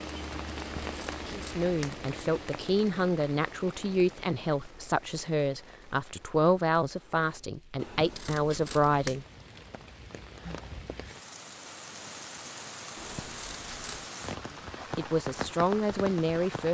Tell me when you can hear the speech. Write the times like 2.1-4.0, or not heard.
1.4-9.2, 14.9-16.6.